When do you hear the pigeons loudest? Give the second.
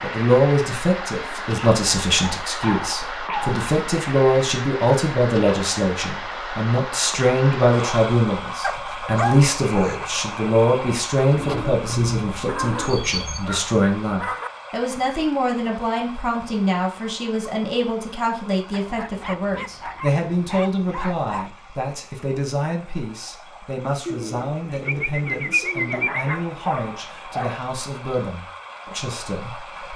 26 s.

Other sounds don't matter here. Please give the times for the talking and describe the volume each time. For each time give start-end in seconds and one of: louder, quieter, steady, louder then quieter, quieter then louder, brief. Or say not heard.
0.0-29.9 quieter.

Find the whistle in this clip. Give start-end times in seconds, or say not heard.
not heard.